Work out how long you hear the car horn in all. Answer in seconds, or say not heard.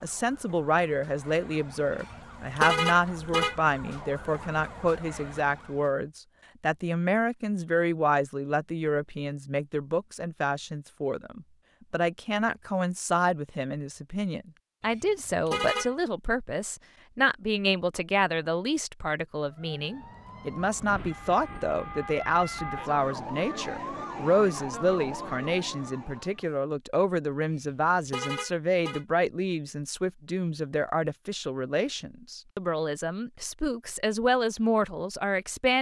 4 s.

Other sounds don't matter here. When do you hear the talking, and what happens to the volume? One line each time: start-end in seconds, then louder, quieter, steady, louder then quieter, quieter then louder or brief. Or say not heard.
0.0-35.7 steady.